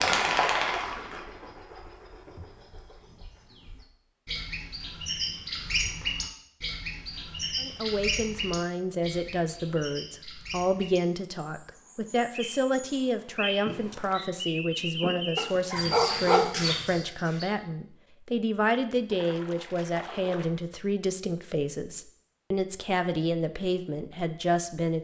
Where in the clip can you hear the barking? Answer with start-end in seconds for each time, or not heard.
15.3-16.5.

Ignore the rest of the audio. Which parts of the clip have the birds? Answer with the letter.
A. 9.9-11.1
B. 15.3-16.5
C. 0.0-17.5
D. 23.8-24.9
C.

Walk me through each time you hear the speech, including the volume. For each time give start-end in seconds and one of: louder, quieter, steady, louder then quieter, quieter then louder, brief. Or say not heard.
7.6-24.9 steady.